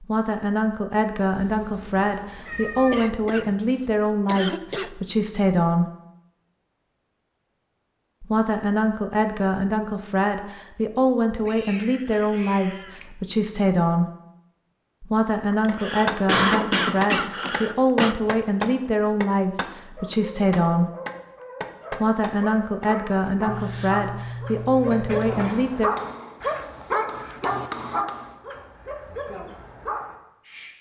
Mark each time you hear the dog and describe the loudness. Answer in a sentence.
You can hear the dog from 19.9 to 30.7 s, getting louder then quieter.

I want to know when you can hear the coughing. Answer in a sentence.
You can hear the coughing from 2.9 to 3.5 s, from 4.2 to 4.9 s, from 15.5 to 18.1 s and from 24.9 to 25.6 s.